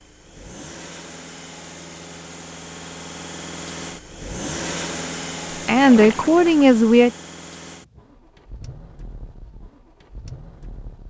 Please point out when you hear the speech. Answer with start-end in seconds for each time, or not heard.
5.7-7.1.